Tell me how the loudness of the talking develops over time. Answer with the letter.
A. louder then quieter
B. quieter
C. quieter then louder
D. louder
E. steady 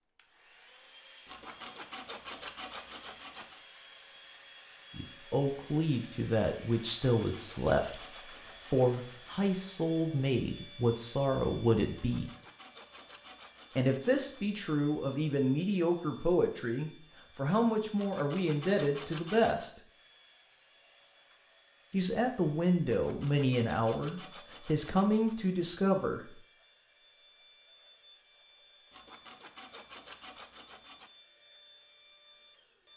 E.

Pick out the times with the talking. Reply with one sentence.
The talking can be heard from 5.0 to 12.3 s, from 13.8 to 19.8 s and from 21.9 to 26.3 s.